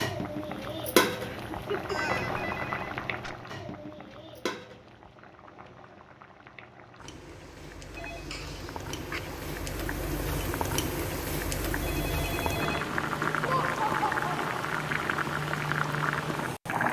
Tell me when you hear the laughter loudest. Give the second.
14 s.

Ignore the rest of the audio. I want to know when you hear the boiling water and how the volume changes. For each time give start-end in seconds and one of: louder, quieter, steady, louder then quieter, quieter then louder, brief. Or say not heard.
0.0-16.8 quieter then louder.